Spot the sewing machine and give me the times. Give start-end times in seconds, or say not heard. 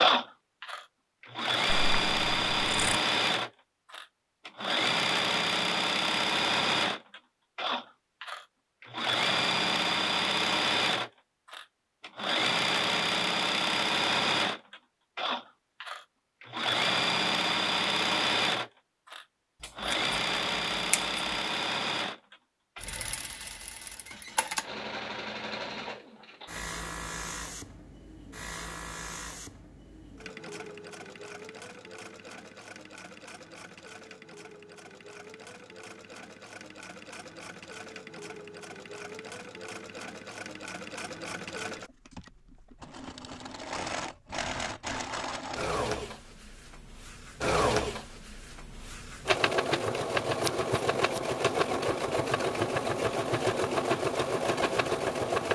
0.0-55.5.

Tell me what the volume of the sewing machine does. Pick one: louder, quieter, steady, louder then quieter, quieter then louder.
quieter then louder.